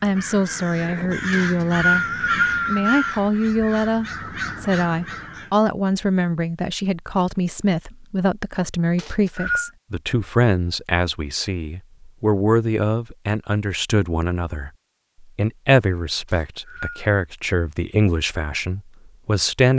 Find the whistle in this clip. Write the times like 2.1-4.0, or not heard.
1.3-3.2, 8.9-9.7, 16.2-17.0.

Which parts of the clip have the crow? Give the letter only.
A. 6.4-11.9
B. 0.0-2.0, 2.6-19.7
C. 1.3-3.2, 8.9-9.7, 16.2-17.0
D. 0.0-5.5
D.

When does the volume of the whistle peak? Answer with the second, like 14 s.
2 s.